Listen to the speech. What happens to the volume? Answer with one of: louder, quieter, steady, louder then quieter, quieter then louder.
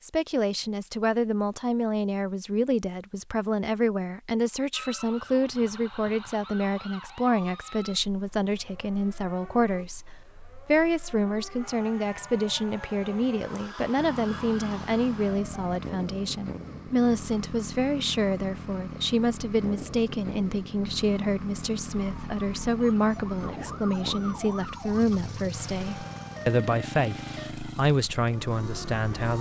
steady.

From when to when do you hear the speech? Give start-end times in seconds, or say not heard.
0.0-10.1, 10.7-29.3.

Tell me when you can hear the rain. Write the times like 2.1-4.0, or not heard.
not heard.